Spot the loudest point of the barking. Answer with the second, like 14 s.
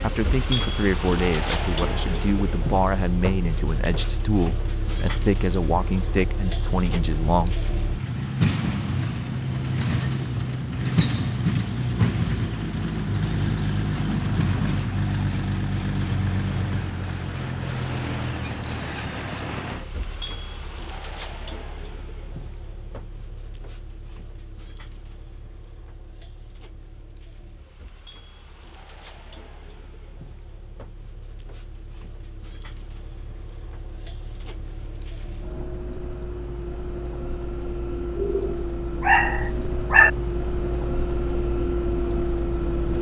40 s.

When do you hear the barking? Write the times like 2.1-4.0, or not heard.
38.1-40.1.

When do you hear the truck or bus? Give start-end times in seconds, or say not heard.
0.0-42.9.